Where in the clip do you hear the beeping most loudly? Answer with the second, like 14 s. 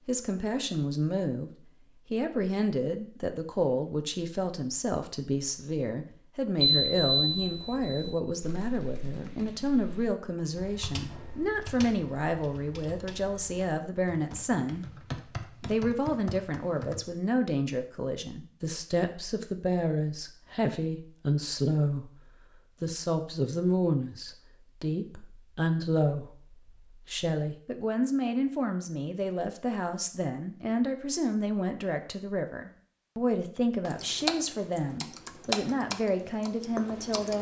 7 s.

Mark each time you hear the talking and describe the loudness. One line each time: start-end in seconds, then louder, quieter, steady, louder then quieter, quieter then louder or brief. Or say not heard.
0.1-14.8 steady
15.6-37.3 steady.